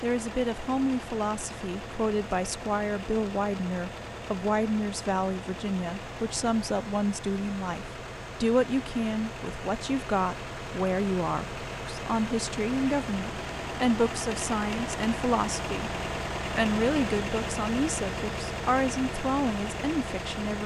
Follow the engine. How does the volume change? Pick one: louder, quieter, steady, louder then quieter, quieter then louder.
louder.